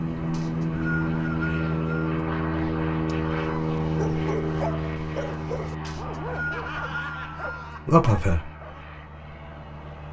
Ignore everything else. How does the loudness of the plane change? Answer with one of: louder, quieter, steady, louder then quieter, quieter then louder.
quieter.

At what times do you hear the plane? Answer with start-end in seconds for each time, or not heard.
0.0-10.0.